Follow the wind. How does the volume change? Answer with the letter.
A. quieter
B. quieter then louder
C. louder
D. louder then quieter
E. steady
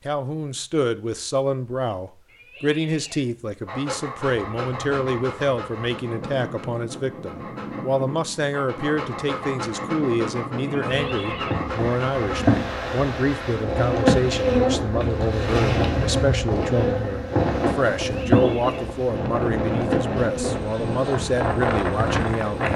C.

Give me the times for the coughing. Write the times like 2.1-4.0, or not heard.
not heard.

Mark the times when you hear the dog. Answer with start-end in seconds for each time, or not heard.
3.6-12.4.